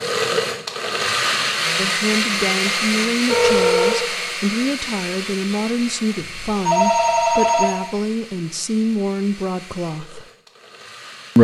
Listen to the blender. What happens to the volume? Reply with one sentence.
The volume of the blender goes down.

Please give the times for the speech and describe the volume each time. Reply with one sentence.
You can hear the speech from 1.8 to 10.2 s, at a steady volume.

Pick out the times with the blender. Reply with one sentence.
The blender can be heard from 0.0 to 11.3 s.